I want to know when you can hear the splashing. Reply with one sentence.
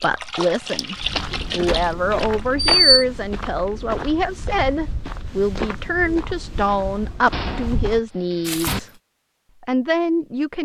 The splashing can be heard from 0.0 to 2.5 s.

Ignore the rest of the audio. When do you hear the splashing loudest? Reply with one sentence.
The loudest moment of the splashing is at 1 second.